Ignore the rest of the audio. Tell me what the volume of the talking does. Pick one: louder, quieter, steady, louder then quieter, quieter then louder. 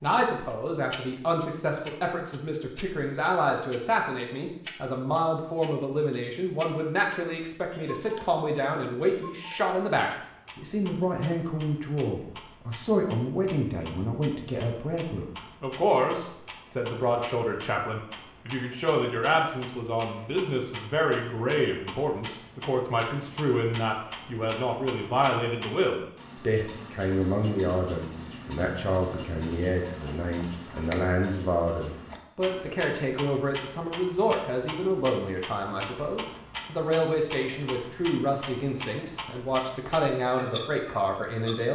steady.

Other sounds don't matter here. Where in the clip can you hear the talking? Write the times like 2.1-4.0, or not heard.
0.0-41.6.